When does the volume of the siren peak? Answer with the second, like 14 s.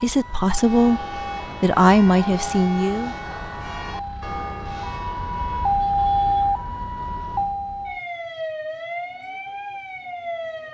6 s.